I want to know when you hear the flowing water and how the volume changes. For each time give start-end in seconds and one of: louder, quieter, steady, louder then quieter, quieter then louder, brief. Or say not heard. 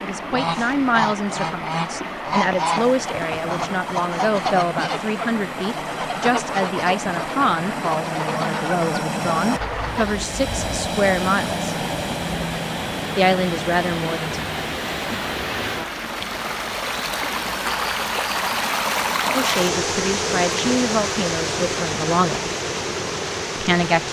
0.0-24.0 louder.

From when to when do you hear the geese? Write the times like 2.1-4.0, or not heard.
0.3-10.2.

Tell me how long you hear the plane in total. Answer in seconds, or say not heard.
13 s.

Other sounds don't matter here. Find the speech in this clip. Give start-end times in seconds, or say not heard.
0.0-11.8, 13.2-14.4, 19.3-22.5, 23.6-24.0.